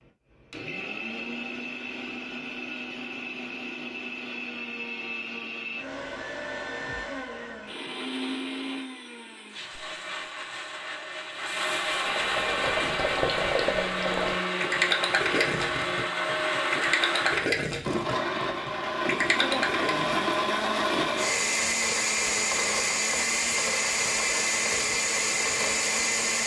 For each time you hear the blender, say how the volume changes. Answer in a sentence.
The blender can be heard from 0.0 to 26.4 s, getting louder.